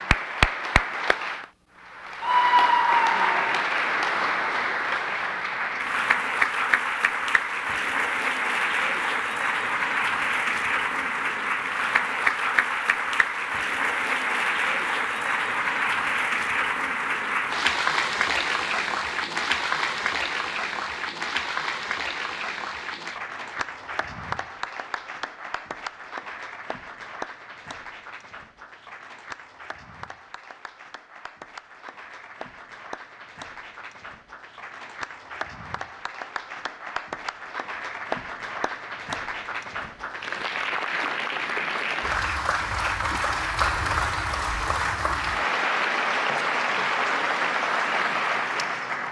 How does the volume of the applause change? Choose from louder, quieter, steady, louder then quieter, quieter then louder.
quieter then louder.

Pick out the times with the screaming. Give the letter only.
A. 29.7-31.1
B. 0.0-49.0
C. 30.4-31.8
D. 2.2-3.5
D.